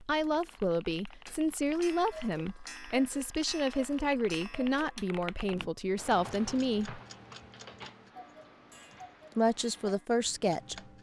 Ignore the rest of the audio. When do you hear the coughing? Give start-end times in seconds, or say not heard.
not heard.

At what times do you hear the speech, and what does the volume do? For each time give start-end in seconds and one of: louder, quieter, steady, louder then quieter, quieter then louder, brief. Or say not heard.
0.1-7.0 steady
9.3-10.8 brief.